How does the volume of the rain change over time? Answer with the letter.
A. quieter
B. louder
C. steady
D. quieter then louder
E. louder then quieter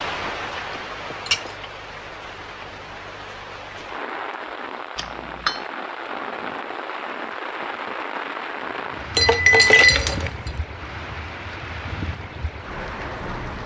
C.